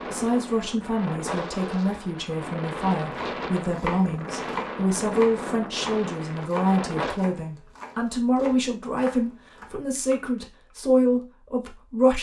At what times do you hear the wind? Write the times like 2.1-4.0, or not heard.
0.0-7.2.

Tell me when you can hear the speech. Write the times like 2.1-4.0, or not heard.
0.1-12.1.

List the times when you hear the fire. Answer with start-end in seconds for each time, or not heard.
not heard.